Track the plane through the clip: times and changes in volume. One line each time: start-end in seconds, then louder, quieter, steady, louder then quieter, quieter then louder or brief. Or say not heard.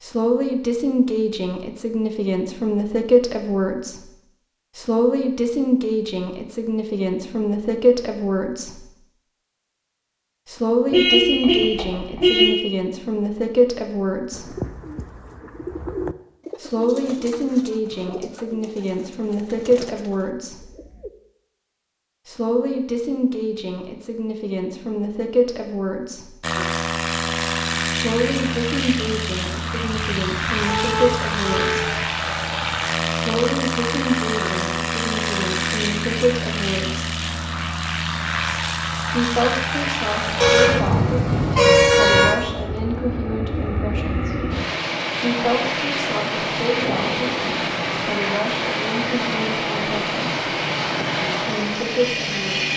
26.4-52.7 steady.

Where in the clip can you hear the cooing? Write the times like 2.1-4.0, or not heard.
14.3-21.1.